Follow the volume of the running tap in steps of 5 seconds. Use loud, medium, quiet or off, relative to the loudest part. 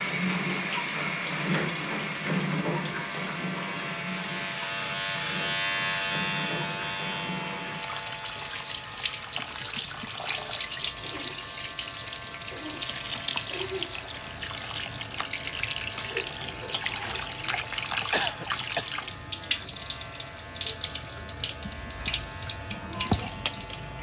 loud, medium, loud, loud, loud.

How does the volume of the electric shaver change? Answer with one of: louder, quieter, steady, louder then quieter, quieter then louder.
quieter.